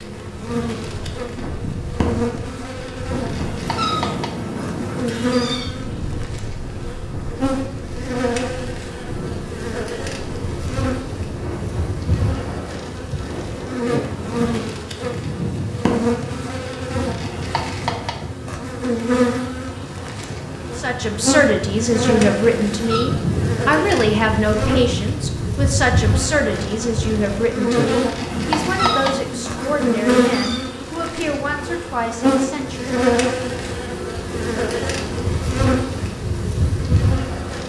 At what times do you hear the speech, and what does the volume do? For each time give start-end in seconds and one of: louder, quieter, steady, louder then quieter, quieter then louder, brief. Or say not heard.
20.8-33.0 quieter.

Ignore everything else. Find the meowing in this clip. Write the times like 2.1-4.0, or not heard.
3.2-5.8, 22.4-23.1, 28.3-30.6.